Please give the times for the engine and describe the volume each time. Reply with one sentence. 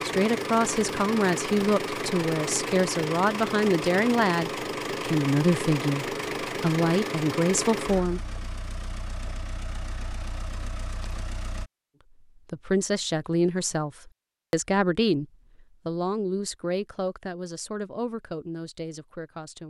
The engine can be heard from 0.0 to 11.7 s, getting quieter.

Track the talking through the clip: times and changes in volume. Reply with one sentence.
The talking can be heard from 0.0 to 8.2 s, at a steady volume; and from 12.3 to 19.6 s, getting quieter.